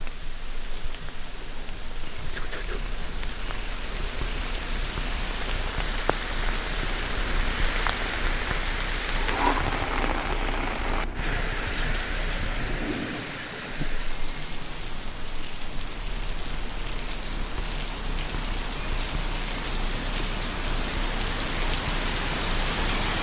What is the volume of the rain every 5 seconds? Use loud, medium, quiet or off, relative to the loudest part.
medium, loud, loud, medium, loud.